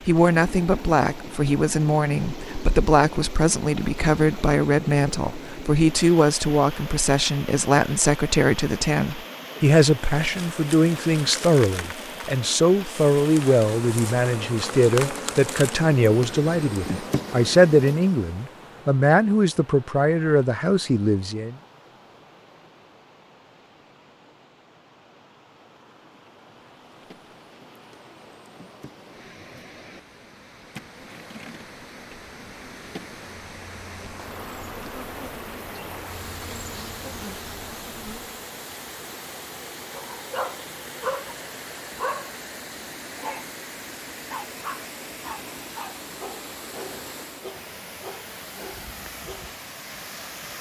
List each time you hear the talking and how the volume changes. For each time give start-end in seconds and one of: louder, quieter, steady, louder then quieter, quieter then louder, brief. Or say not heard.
0.1-21.6 steady.